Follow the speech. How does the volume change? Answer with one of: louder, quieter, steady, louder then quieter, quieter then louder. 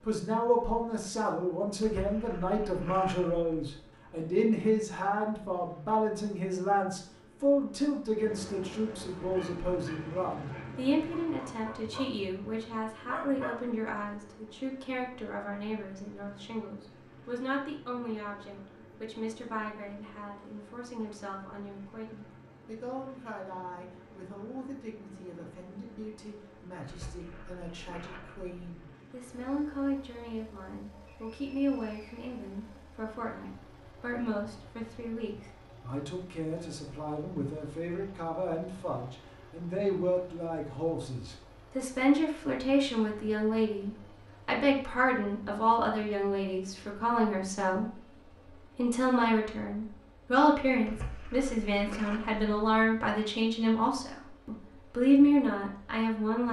quieter then louder.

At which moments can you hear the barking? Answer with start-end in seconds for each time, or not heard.
9.2-13.8.